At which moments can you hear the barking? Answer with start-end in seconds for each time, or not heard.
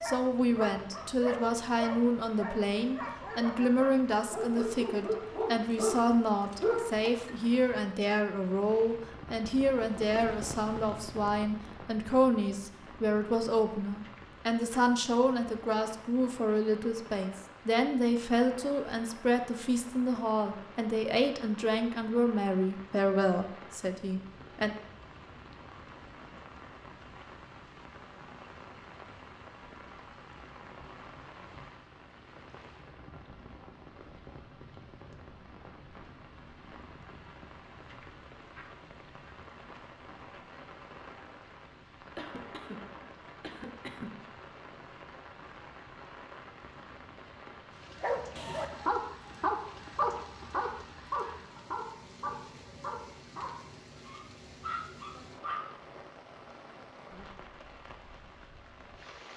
0.0-7.3, 48.0-55.6.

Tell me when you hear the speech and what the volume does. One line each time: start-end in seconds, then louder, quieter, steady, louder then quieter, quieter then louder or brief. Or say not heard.
0.0-24.8 steady.